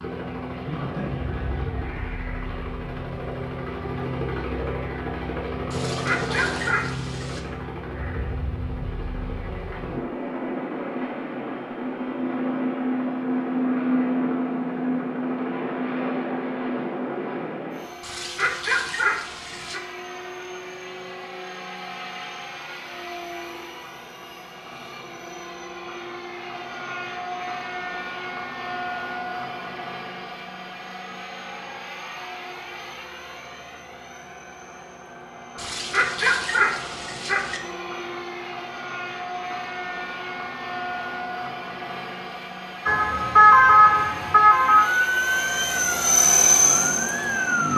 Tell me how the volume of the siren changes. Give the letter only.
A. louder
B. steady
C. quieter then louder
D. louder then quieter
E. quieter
E.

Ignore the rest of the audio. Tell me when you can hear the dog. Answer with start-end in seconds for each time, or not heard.
5.7-7.5, 18.0-19.8, 35.5-37.6.